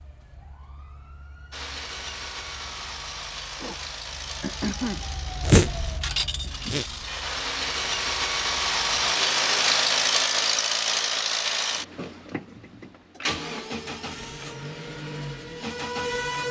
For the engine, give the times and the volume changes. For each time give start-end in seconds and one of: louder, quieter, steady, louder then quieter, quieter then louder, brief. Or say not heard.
1.5-16.4 louder then quieter.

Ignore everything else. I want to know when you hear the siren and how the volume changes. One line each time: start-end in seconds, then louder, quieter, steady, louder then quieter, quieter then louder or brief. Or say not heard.
0.0-9.7 louder then quieter
13.4-16.4 brief.